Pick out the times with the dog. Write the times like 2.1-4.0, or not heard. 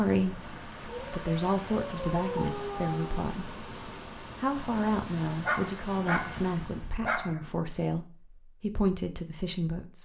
0.8-3.3, 5.5-7.5.